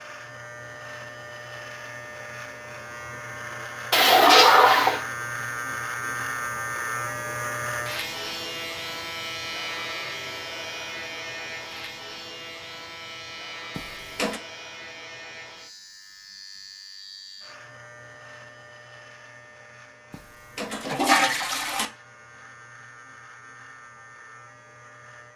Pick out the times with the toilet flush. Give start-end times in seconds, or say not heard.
3.9-5.0, 13.8-14.4, 20.1-21.9.